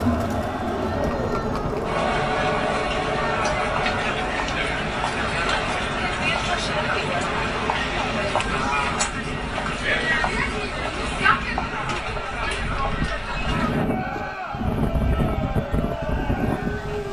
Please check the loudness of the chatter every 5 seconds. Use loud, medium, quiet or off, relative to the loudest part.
loud, loud, loud, medium.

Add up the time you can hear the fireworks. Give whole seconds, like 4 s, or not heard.
not heard.